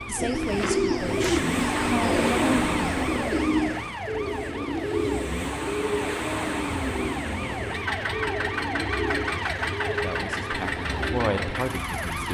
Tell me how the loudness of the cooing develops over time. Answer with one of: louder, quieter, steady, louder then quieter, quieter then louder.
quieter.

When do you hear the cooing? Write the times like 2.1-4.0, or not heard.
0.1-11.6.